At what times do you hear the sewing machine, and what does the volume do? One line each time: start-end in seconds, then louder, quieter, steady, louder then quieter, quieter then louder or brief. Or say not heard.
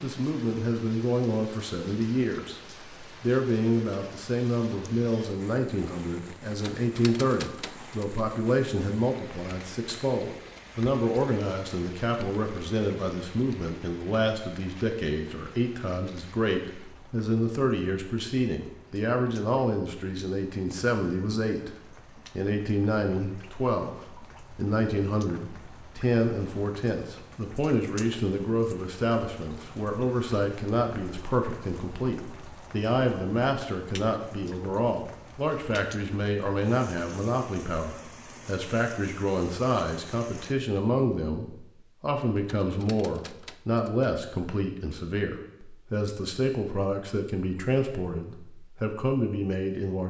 not heard.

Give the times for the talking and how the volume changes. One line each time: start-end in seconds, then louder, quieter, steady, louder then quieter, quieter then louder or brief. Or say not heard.
0.0-2.6 brief
3.2-21.8 steady
22.4-50.0 steady.